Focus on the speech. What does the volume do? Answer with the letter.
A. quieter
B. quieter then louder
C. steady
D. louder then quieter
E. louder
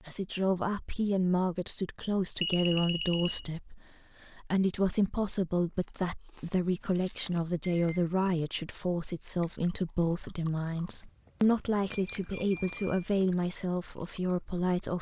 C.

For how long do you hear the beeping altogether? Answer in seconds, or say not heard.
3 s.